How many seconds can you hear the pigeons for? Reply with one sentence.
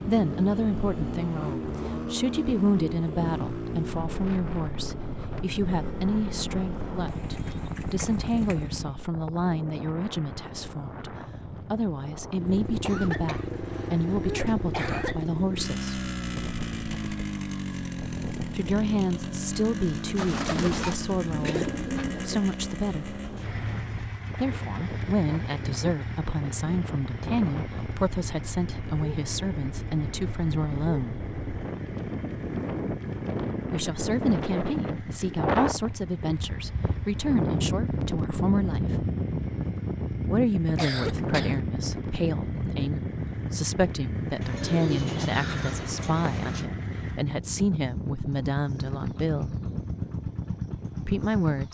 You can hear the pigeons for 6 seconds altogether.